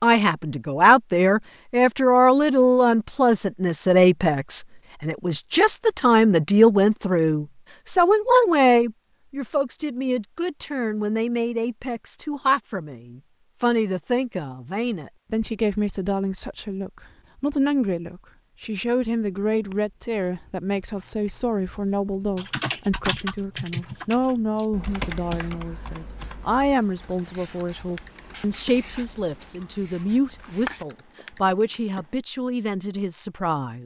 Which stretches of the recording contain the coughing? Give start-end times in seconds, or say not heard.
not heard.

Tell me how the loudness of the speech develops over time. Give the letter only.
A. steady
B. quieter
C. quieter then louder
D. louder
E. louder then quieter
B.